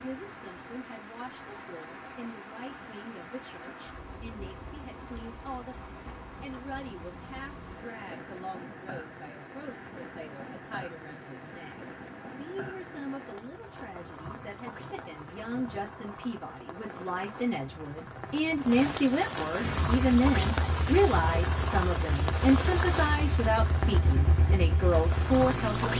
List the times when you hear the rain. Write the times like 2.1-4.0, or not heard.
0.0-25.9.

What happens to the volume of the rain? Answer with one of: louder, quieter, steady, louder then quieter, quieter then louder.
louder.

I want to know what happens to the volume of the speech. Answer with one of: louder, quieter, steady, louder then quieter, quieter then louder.
louder.